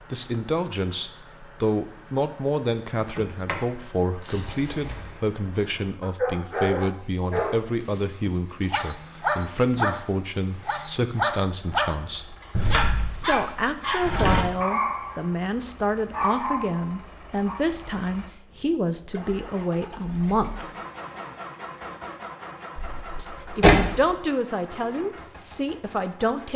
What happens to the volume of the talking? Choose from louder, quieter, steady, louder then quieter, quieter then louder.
steady.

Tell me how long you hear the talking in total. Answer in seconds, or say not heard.
23 s.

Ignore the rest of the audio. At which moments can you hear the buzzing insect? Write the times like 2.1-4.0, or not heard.
not heard.